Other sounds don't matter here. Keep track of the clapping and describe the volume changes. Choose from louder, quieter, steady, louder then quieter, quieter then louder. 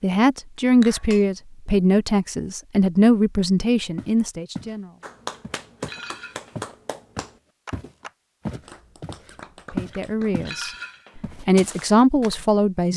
quieter.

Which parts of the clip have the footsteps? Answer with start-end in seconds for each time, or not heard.
4.0-4.8, 5.4-10.6, 11.2-12.4.